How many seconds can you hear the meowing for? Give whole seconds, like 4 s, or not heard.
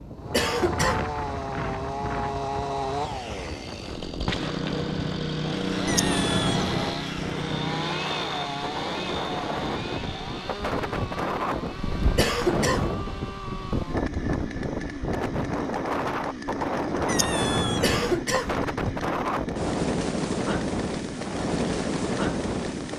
2 s.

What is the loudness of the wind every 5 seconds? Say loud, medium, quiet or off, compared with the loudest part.
medium, medium, loud, loud, loud.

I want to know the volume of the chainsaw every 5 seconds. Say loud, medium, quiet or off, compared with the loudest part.
loud, loud, medium, medium, medium.